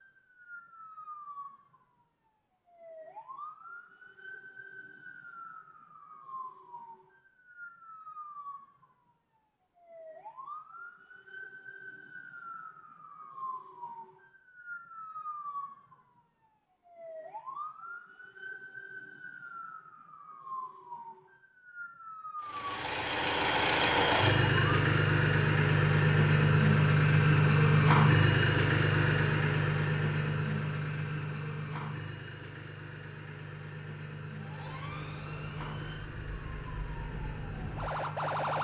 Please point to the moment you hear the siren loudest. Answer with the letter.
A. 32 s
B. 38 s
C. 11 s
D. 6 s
B.